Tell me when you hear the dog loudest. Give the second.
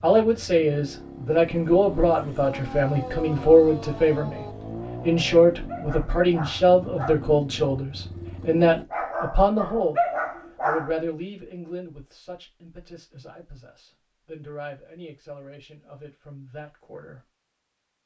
10 s.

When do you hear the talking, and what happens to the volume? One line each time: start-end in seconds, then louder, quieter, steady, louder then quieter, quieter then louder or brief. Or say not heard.
0.0-17.2 quieter.